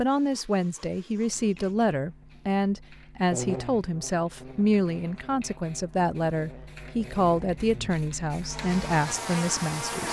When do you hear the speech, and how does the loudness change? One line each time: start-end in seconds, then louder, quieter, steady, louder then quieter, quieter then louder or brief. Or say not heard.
0.0-10.0 steady.